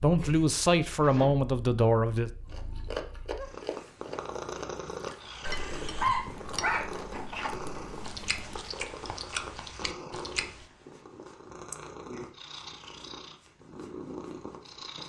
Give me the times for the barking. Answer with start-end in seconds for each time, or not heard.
6.0-7.5.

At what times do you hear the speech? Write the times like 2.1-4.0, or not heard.
0.0-2.3.